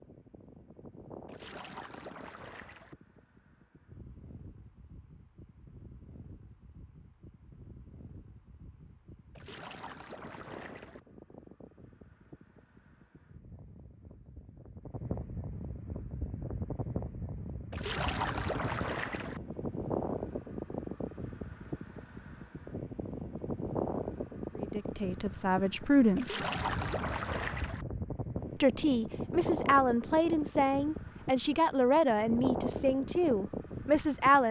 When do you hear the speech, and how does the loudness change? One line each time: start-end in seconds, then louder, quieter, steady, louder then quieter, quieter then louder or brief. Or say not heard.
24.6-26.4 brief
28.6-34.4 steady.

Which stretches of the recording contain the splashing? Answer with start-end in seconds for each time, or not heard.
1.2-3.0, 9.3-11.0, 17.7-19.4, 26.1-27.9.